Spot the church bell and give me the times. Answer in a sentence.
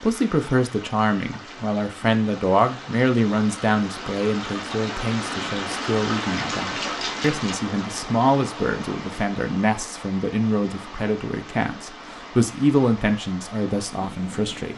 You can't hear the church bell here.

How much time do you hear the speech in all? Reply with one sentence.
You can hear the speech for 15 seconds altogether.